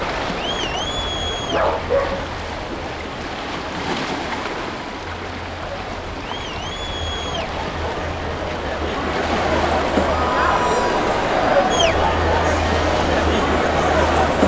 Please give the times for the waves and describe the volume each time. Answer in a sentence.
The waves can be heard from 0.0 to 14.4 s, at a steady volume.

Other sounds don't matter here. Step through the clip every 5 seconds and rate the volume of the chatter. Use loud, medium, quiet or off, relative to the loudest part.
medium, medium, loud.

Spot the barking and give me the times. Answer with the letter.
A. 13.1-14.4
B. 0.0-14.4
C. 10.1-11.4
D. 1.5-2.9
D.